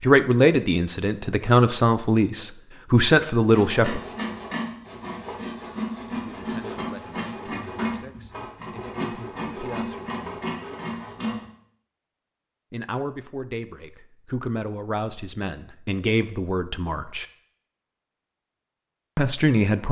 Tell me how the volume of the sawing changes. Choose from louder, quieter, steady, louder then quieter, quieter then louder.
steady.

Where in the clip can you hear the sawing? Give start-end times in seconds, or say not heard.
3.5-11.4.